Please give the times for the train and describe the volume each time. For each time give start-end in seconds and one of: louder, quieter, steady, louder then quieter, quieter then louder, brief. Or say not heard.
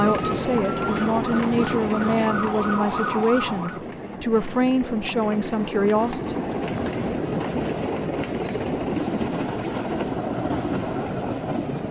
0.0-11.8 quieter then louder.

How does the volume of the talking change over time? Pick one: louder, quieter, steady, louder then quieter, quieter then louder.
steady.